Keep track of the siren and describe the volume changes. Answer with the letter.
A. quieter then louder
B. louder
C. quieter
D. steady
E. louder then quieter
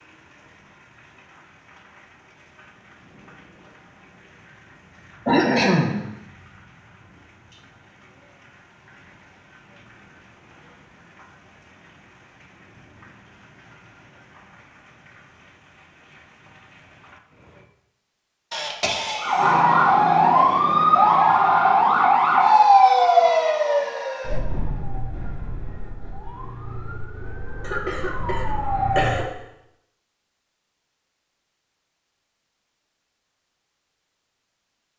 A.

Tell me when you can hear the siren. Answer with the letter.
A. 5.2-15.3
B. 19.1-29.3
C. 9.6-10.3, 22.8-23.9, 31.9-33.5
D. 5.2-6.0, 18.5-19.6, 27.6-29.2
B.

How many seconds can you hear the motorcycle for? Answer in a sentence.
You can't hear the motorcycle here.